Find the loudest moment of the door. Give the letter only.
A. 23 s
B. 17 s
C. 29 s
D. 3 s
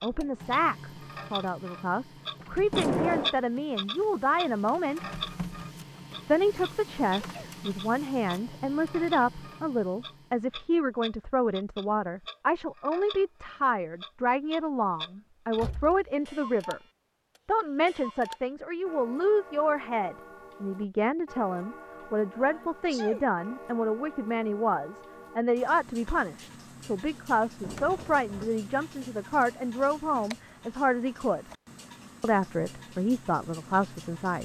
D.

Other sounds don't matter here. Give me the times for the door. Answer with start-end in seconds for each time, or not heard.
2.7-3.3, 15.6-16.1, 27.6-28.5.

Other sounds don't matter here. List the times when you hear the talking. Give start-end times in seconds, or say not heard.
0.0-5.1, 6.2-16.8, 17.4-31.4, 32.2-34.3.